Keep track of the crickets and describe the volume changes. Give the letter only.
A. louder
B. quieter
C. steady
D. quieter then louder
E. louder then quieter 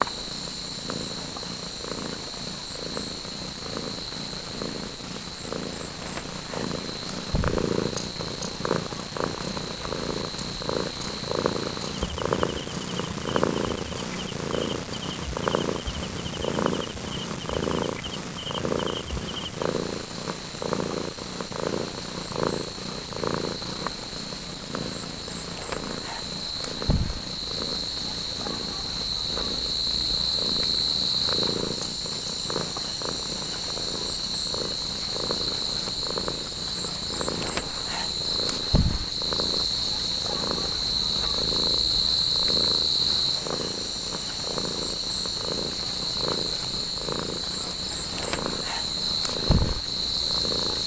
A.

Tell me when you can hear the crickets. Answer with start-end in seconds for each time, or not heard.
0.0-50.8.